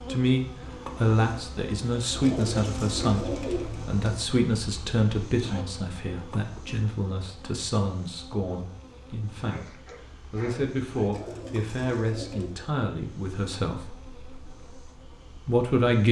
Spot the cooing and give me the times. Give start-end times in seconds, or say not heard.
2.1-4.0, 11.0-12.6.